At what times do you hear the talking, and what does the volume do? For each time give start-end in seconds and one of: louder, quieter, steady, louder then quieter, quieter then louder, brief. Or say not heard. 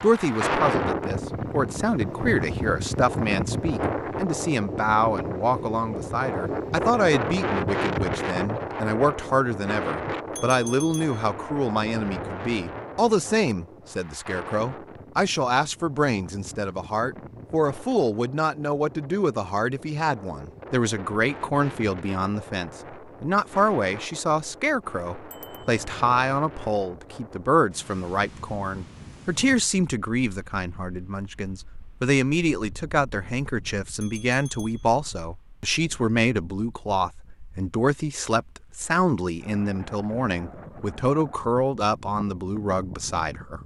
0.0-43.6 steady.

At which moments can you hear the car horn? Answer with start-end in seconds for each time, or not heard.
not heard.